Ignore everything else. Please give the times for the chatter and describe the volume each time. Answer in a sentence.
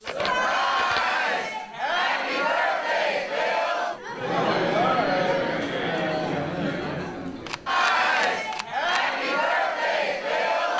You can hear the chatter from 0.1 to 10.7 s, at a steady volume.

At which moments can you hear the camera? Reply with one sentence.
The camera can be heard from 0.1 to 1.1 s and from 7.5 to 9.1 s.